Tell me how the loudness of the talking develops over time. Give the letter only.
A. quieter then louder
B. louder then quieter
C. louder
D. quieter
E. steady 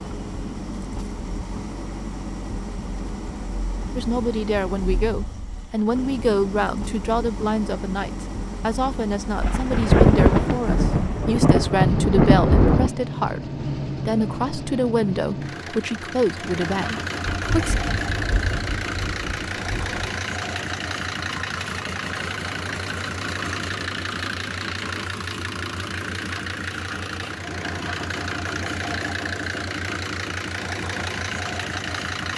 E.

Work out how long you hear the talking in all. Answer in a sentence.
The talking can be heard for 14 seconds in total.